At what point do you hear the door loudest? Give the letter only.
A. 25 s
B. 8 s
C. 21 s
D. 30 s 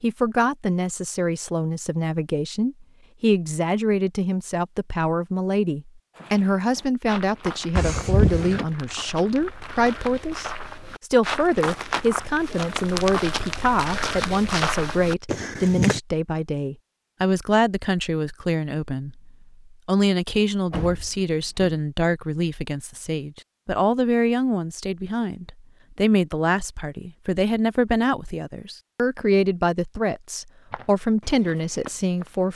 B.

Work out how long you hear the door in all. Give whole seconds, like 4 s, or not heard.
2 s.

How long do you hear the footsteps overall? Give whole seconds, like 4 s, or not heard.
12 s.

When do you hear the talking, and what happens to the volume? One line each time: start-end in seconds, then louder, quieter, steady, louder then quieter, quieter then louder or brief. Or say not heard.
0.0-32.5 steady.